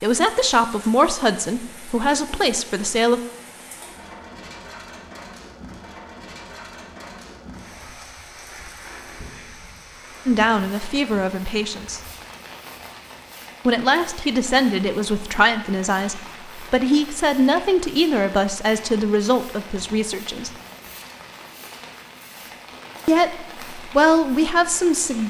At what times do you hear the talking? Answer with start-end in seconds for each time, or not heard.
0.0-3.2, 10.2-12.0, 13.7-20.5, 23.1-25.2.